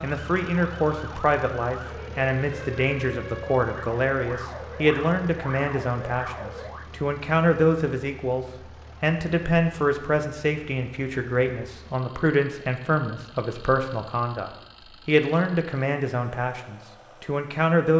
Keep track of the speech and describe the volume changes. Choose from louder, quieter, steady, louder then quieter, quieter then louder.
steady.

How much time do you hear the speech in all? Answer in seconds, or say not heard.
18 s.